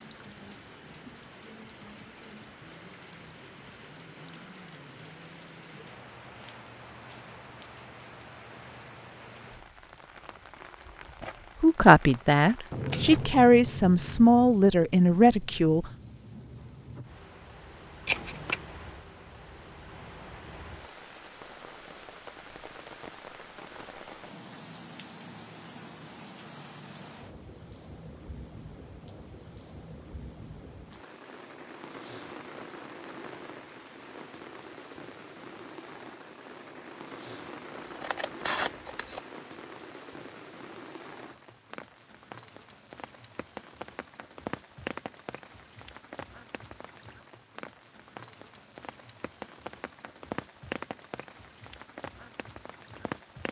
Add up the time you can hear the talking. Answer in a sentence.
The talking can be heard for 4 seconds in total.